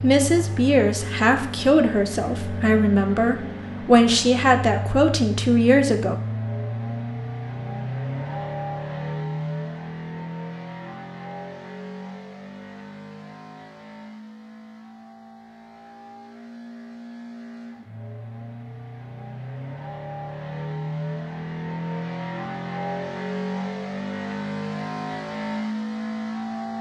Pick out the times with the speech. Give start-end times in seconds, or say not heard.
0.0-6.2.